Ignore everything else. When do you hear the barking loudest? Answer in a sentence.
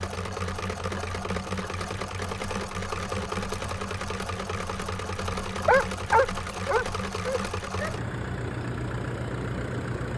The volume of the barking peaks at 6 seconds.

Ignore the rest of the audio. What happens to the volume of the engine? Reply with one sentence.
The loudness of the engine stays about the same.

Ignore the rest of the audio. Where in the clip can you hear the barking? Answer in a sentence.
The barking can be heard from 5.7 to 8.0 s.